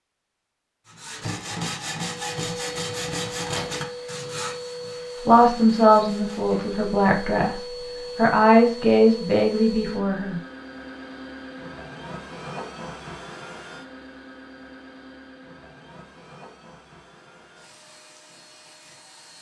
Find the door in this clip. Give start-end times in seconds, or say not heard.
3.2-3.9.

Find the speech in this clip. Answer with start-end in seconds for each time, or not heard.
5.2-10.4.